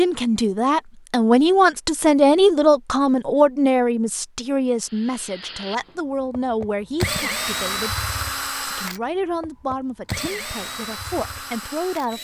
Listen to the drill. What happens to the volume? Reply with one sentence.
The volume of the drill goes up, then down.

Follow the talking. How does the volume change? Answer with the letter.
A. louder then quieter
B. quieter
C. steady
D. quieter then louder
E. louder
B.